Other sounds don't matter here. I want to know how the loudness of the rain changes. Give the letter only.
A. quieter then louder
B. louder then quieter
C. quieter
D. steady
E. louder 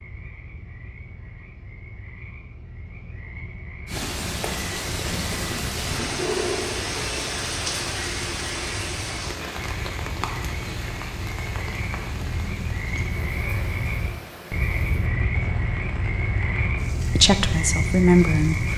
C.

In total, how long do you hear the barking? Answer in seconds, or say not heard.
not heard.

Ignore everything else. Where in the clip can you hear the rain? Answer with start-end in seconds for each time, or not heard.
3.9-18.7.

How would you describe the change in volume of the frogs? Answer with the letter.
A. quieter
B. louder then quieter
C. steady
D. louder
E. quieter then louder
D.